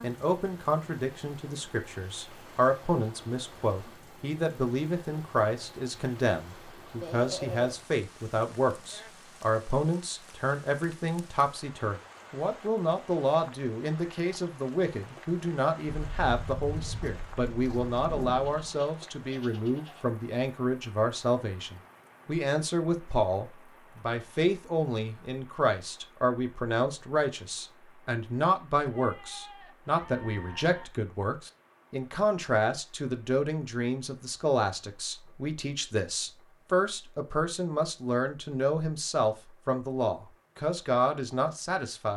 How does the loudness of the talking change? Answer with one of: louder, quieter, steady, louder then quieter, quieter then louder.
steady.